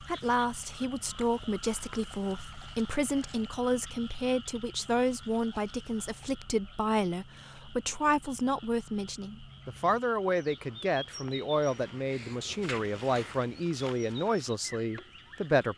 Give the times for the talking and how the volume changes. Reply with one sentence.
You can hear the talking from 0.0 to 15.7 s, at a steady volume.